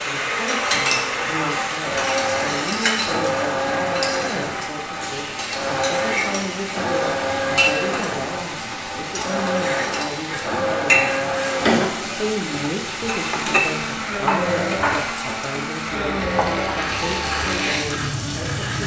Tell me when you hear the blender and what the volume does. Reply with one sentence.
The blender can be heard from 0.0 to 18.8 s, at a steady volume.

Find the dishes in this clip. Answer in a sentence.
You can hear the dishes from 14.1 to 15.2 s.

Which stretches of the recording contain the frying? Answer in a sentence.
You can hear the frying from 0.0 to 18.8 s.